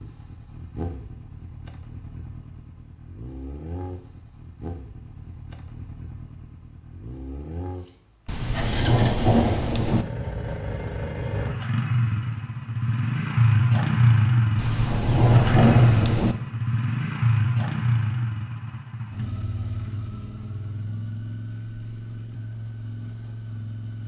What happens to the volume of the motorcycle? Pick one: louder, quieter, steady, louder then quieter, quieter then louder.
louder then quieter.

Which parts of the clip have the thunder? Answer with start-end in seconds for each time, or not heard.
8.2-10.1, 14.6-16.4.